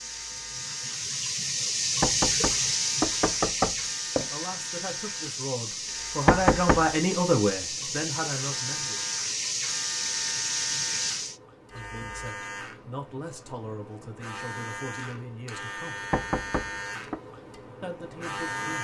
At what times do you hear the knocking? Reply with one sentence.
You can hear the knocking from 2.0 to 4.3 s, from 6.2 to 6.8 s and from 16.1 to 17.2 s.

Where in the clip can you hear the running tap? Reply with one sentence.
You can hear the running tap from 0.0 to 11.4 s.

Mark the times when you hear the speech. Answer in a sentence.
The speech can be heard from 4.2 to 9.0 s, from 11.7 to 16.0 s and from 17.8 to 18.7 s.